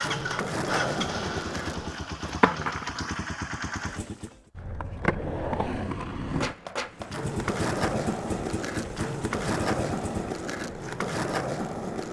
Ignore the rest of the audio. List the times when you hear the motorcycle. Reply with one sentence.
You can hear the motorcycle from 0.0 to 4.5 s and from 6.9 to 10.5 s.